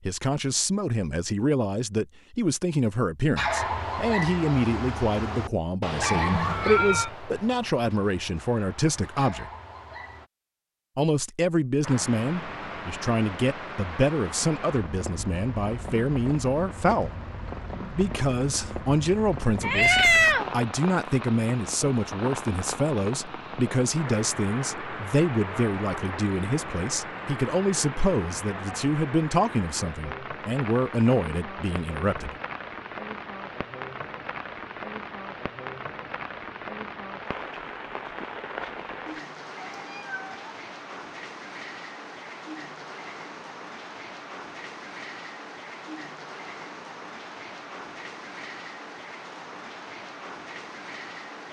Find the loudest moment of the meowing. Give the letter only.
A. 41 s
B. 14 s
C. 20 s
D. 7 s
C.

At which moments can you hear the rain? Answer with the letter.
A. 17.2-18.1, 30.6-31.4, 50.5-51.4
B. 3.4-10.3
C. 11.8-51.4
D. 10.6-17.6
C.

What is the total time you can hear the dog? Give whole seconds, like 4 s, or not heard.
7 s.